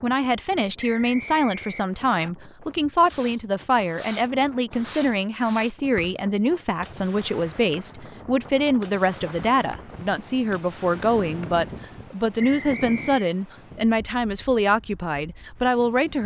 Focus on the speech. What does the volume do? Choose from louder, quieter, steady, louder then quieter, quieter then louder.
steady.